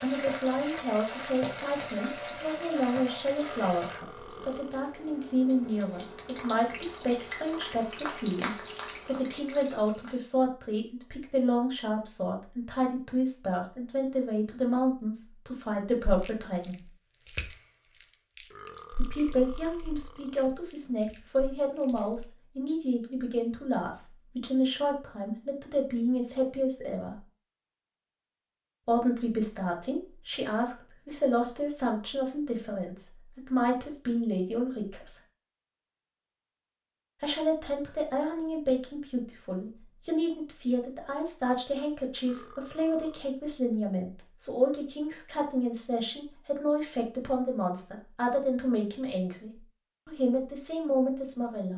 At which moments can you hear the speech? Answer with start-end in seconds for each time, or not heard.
0.0-16.9, 18.9-27.2, 28.9-35.1, 37.2-51.7.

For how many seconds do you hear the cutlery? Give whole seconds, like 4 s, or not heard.
not heard.